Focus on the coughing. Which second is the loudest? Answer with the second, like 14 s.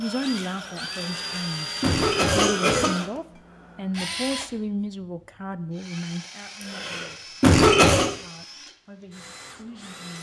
8 s.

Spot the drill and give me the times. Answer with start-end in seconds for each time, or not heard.
0.0-10.1.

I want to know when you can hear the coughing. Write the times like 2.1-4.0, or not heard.
1.1-3.0, 6.6-8.1.